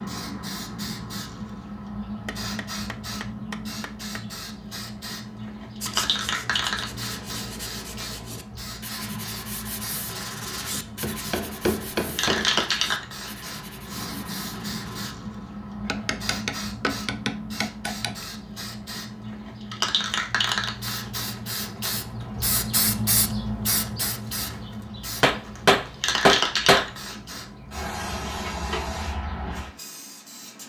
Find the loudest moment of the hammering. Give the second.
26 s.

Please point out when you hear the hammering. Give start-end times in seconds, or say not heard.
2.2-4.2, 10.7-12.7, 15.8-18.1, 25.2-26.9.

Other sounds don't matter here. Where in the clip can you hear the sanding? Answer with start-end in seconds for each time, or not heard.
5.8-15.2.